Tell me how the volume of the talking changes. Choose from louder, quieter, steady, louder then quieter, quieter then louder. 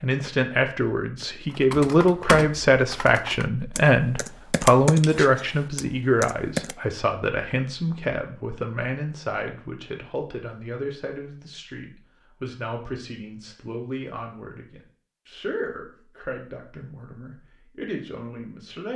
quieter.